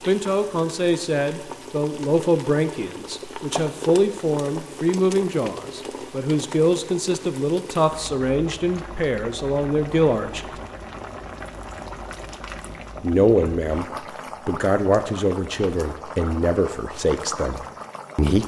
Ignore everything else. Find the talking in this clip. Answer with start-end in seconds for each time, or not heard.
0.1-10.6, 13.0-13.8, 14.4-18.4.